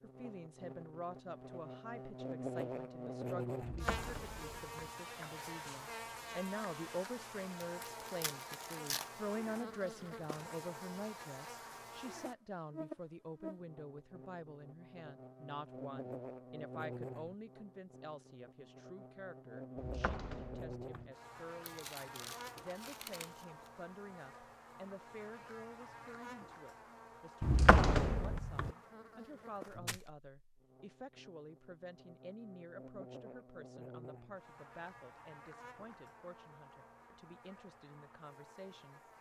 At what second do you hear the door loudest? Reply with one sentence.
The volume of the door peaks at 28 seconds.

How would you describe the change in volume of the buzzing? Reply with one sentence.
The loudness of the buzzing goes down.